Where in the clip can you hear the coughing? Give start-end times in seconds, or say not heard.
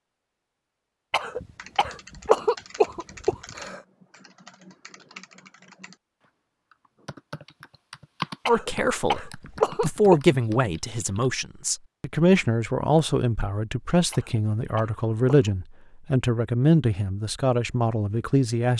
1.1-3.8, 8.4-10.2, 14.1-15.5.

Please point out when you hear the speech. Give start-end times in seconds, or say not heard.
8.4-18.7.